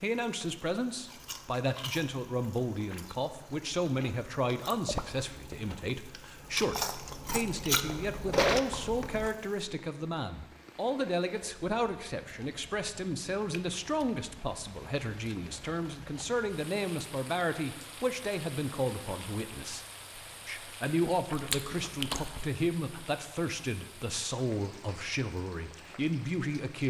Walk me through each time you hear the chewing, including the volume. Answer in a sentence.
The chewing can be heard from 1.1 to 9.3 s, getting louder; and briefly from 21.1 to 22.6 s.